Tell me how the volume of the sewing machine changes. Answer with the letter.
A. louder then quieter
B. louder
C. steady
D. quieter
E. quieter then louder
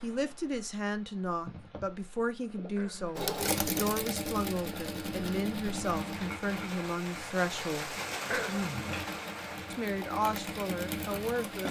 E.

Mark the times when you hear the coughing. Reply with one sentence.
The coughing can be heard from 2.8 to 3.2 s and from 8.3 to 8.9 s.